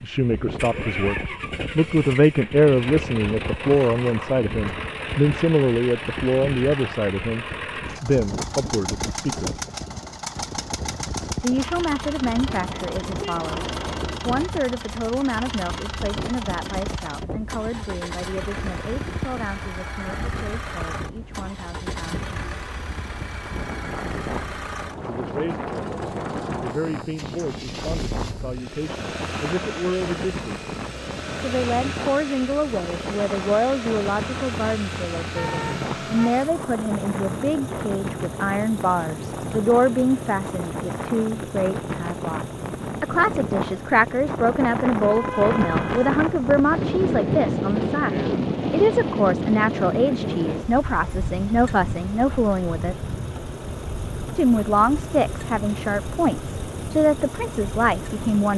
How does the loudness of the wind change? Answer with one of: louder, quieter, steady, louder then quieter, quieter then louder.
louder.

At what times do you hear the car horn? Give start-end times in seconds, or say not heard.
12.4-14.4, 35.4-36.4, 44.9-46.2.